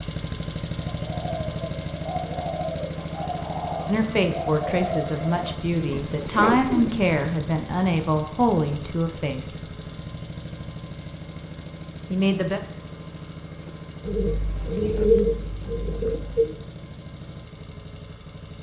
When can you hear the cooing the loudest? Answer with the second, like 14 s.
15 s.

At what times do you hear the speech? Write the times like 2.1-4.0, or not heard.
3.9-9.6, 12.1-12.6.